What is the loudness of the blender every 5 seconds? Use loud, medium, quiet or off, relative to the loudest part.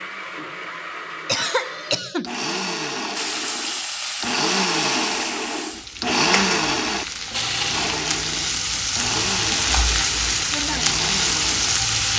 loud, loud, medium.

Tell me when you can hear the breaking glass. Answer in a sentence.
You can't hear the breaking glass here.